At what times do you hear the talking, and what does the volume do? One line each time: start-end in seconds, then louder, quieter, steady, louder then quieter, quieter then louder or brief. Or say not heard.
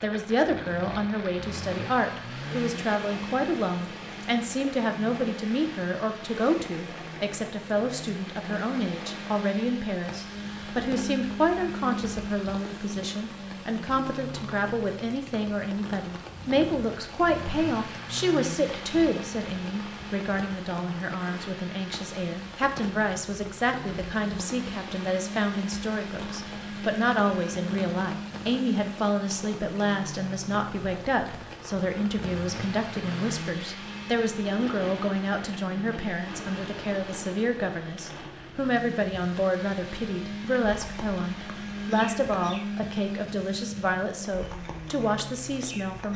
0.0-46.1 steady.